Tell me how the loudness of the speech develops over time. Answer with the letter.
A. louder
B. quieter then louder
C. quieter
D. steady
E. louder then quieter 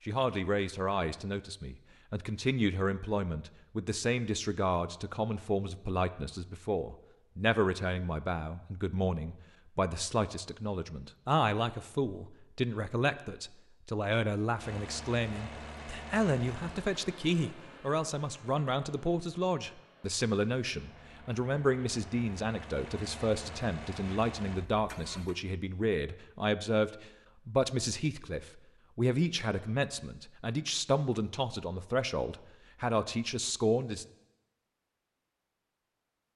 D.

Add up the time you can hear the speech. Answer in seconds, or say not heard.
34 s.